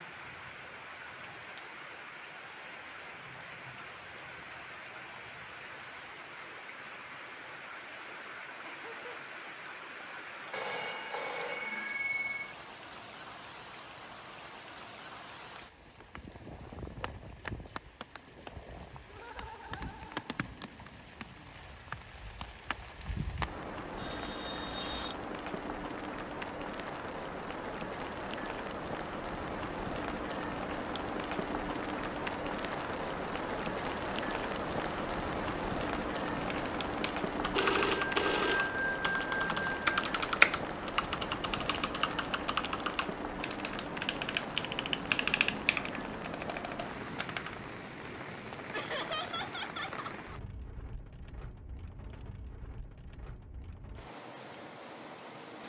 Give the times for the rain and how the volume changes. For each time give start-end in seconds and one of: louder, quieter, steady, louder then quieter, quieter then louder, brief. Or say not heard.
0.0-55.6 louder then quieter.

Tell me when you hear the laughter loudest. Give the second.
49 s.